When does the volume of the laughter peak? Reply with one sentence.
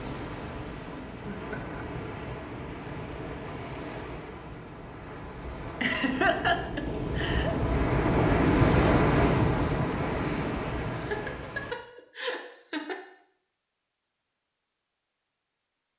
The volume of the laughter peaks at 6 seconds.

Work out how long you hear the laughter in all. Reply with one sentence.
You can hear the laughter for 5 seconds altogether.